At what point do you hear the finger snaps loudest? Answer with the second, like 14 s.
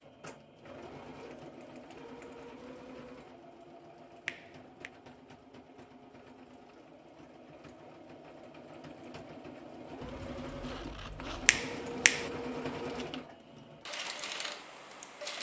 12 s.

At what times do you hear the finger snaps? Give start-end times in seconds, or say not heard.
4.2-4.9, 11.4-12.3.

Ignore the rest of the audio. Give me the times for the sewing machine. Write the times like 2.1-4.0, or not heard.
0.0-15.3.